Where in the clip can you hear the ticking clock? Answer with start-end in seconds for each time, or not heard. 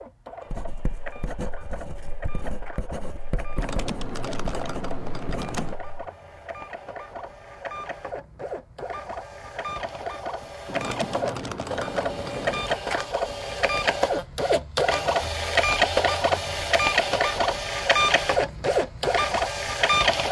not heard.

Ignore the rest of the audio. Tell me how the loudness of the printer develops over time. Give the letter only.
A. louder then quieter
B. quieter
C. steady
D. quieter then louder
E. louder
E.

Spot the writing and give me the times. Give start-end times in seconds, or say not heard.
0.5-5.8.